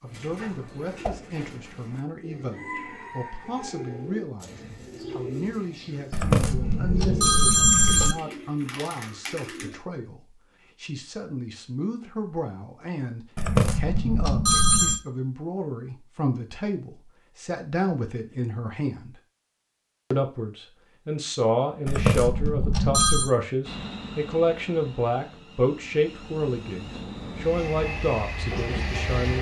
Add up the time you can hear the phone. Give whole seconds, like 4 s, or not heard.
5 s.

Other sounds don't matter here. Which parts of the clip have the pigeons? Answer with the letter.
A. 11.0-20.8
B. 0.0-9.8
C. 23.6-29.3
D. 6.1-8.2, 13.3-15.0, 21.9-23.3
B.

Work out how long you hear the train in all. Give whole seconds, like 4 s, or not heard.
6 s.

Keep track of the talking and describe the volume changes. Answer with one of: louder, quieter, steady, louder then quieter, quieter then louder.
louder.